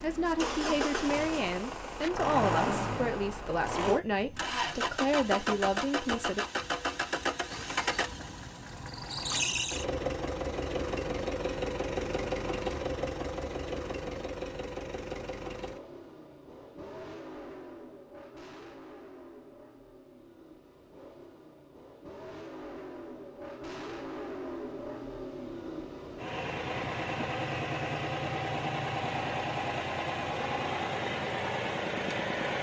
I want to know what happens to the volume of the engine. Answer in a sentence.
The volume of the engine goes down, then up.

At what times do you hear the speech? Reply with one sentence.
You can hear the speech from 0.0 to 6.5 s.